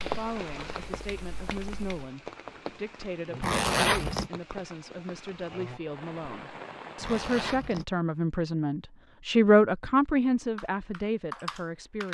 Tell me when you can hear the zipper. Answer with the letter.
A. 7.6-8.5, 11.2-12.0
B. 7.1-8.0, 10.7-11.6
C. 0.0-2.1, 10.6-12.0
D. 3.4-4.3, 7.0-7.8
D.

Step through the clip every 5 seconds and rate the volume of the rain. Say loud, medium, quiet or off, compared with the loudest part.
loud, loud, off.